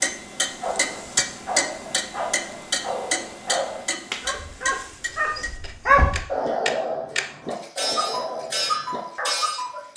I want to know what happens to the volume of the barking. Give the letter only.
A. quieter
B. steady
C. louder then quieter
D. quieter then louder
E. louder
C.